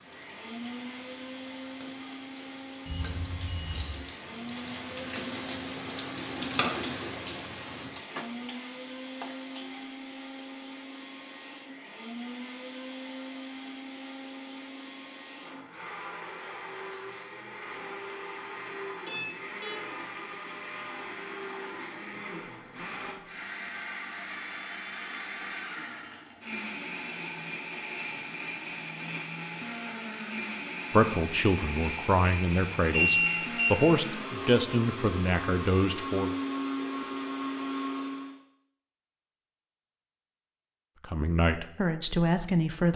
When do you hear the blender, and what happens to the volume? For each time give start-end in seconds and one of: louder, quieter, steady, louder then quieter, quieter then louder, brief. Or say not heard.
0.0-38.4 louder.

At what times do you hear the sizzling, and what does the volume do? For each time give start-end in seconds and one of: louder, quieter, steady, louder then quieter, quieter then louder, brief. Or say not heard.
0.0-10.9 louder then quieter.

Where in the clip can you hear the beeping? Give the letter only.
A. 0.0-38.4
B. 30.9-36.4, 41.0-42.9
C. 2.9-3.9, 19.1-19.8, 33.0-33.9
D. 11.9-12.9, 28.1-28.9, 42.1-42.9
C.